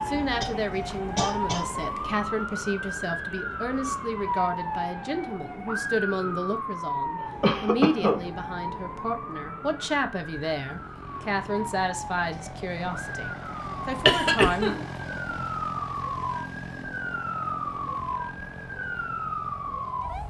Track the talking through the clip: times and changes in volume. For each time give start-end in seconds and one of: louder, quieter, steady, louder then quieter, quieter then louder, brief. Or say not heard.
0.1-14.8 steady.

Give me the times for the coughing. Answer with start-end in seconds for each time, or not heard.
0.4-2.1, 7.2-8.2, 14.1-14.8.